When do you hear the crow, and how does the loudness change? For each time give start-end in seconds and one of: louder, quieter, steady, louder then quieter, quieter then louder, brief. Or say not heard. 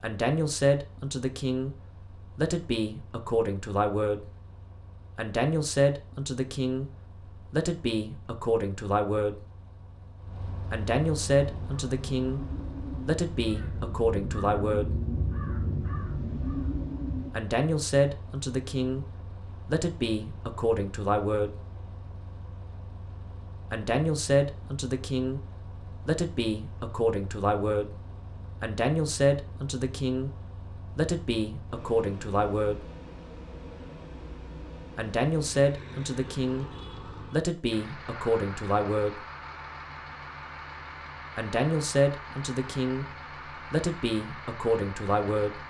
11.4-17.3 louder.